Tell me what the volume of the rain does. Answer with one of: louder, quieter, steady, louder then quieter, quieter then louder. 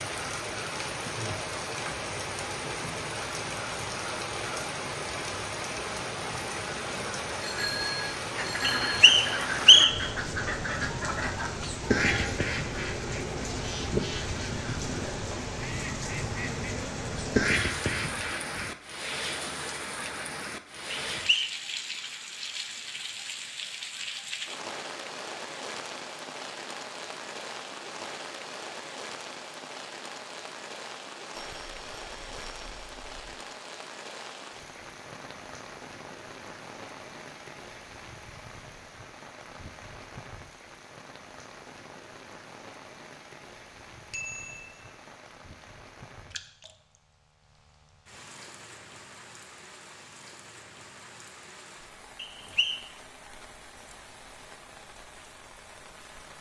quieter.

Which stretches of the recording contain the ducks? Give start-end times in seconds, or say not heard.
8.3-18.7.